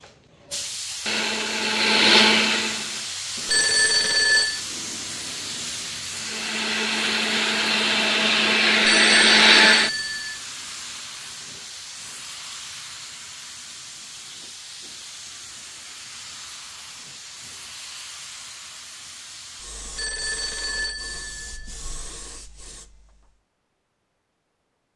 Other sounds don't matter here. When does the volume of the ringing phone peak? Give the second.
4 s.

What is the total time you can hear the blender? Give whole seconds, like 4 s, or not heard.
7 s.